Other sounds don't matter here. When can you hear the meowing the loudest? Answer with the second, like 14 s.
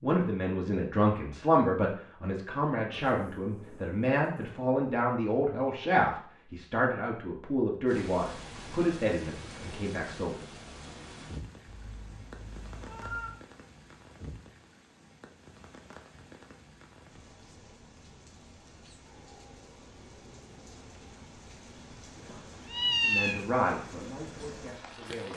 23 s.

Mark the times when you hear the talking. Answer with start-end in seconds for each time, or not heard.
0.0-10.3, 23.1-25.3.